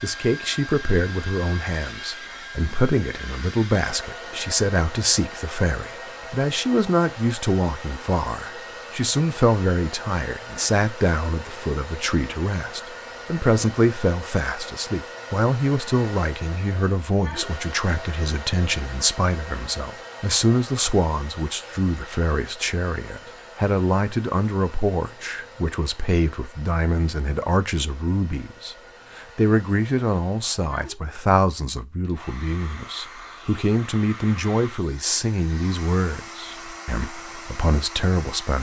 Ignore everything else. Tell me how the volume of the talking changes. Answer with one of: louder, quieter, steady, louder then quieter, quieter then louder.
steady.